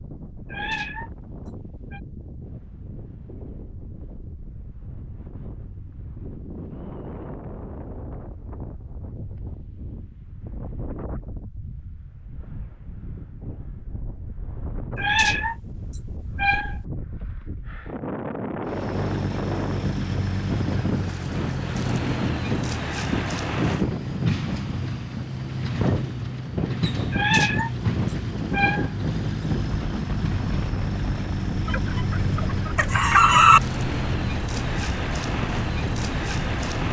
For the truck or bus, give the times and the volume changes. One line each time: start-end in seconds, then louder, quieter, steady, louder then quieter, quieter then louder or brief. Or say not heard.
18.6-36.8 steady.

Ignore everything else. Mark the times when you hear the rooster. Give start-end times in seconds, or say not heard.
31.6-33.6.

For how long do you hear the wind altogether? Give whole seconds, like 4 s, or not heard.
37 s.